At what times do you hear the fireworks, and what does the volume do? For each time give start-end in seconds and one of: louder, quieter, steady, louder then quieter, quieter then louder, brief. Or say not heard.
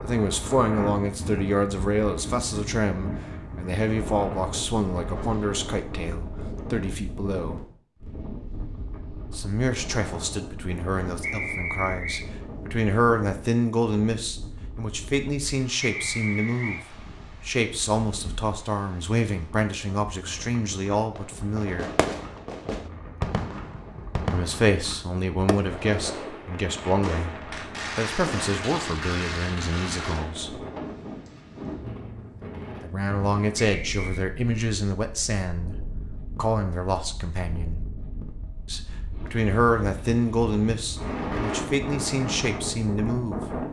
21.1-30.4 steady.